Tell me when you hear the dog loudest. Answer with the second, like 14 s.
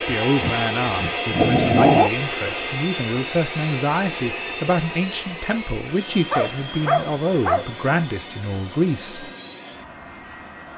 2 s.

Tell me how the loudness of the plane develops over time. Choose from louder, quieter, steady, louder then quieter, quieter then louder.
quieter.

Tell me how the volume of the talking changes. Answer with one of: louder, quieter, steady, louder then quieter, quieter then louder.
steady.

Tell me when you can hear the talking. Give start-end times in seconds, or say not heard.
0.1-9.3.